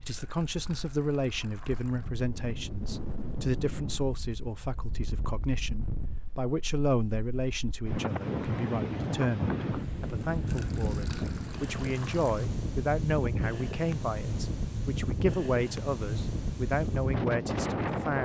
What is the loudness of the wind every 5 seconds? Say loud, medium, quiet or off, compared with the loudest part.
medium, loud, loud, loud.